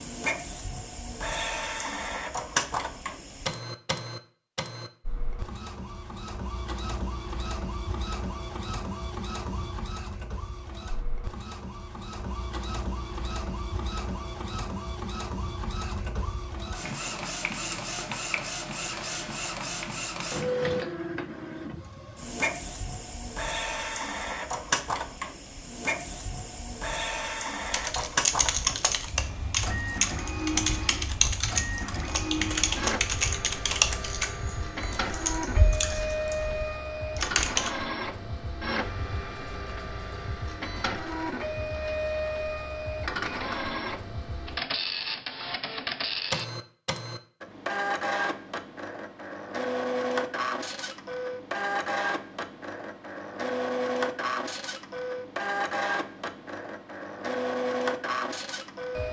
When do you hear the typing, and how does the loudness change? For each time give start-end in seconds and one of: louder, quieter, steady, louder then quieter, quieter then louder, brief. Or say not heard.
27.6-37.7 quieter.